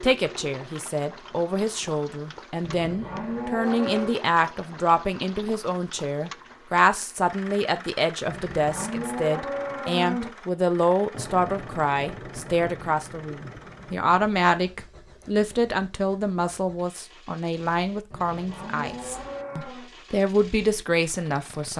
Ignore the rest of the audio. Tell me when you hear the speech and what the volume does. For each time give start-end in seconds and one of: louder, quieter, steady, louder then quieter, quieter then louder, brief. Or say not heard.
0.0-21.7 steady.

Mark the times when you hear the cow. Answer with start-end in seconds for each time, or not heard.
2.6-4.2, 8.2-10.3, 18.1-19.9.